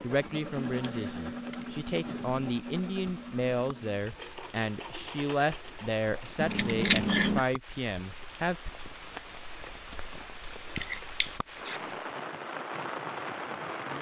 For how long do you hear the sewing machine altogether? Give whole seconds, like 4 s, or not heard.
7 s.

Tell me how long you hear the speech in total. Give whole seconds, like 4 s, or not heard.
9 s.